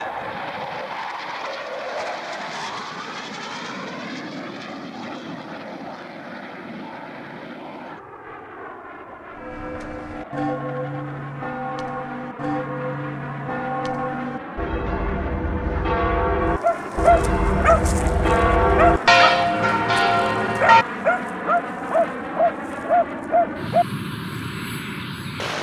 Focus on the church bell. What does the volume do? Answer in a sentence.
The loudness of the church bell goes up.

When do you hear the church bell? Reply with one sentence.
The church bell can be heard from 9.3 to 20.9 s.